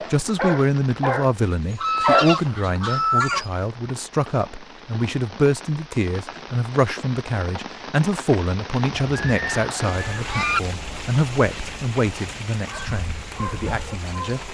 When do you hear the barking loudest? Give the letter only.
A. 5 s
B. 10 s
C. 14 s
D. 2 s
D.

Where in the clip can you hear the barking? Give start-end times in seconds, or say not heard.
0.0-3.5, 12.7-14.2.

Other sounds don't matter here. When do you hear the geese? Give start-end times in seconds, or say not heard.
1.8-3.5, 8.9-10.6.